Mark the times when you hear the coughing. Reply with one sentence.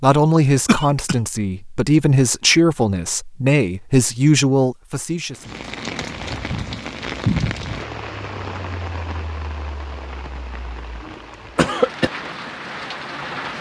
The coughing can be heard from 0.7 to 1.1 s and from 11.1 to 12.1 s.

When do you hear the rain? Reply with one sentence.
You can hear the rain from 5.3 to 13.5 s.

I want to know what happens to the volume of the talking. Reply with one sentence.
The loudness of the talking stays about the same.